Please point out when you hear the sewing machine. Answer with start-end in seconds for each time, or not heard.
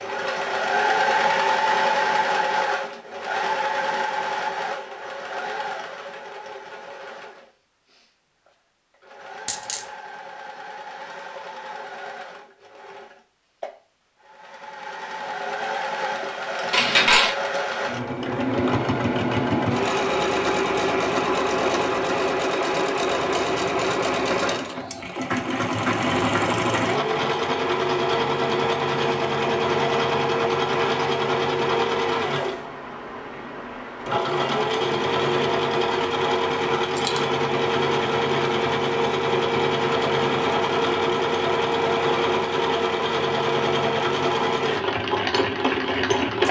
0.0-46.4.